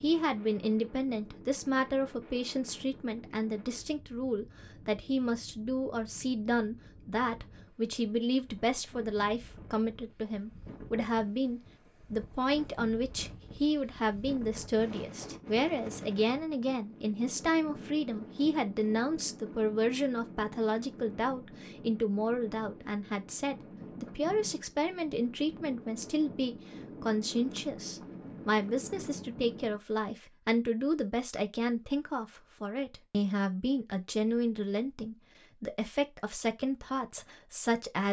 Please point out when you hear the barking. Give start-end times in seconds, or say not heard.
not heard.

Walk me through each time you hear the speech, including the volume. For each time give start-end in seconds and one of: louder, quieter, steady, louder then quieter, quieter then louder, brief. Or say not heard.
0.0-38.0 steady.